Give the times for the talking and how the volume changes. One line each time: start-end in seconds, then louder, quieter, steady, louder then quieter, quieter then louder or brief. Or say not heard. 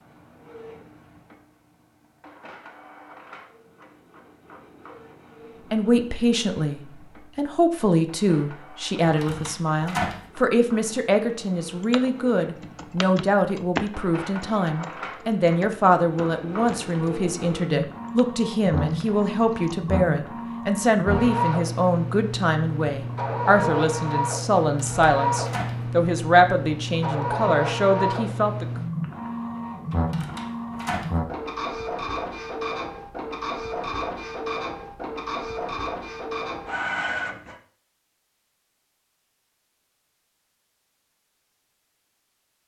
5.7-28.6 steady.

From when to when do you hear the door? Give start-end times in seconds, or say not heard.
9.0-10.2, 24.6-25.8, 29.9-31.1.